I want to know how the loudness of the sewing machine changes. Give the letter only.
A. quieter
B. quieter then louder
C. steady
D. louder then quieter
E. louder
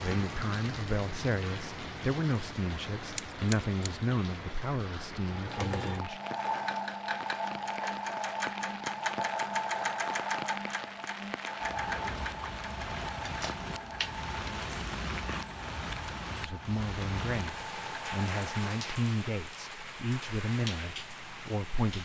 A.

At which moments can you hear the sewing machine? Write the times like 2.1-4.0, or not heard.
5.2-18.8.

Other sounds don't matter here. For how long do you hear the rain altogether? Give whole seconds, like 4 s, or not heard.
22 s.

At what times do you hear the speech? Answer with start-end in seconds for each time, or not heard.
0.0-6.2, 16.4-21.9.